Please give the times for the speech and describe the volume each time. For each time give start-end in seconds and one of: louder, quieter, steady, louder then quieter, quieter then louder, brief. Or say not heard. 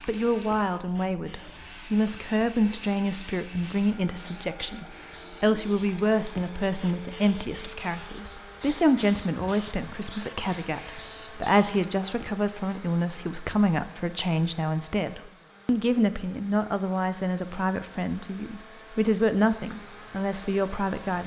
0.1-21.2 steady.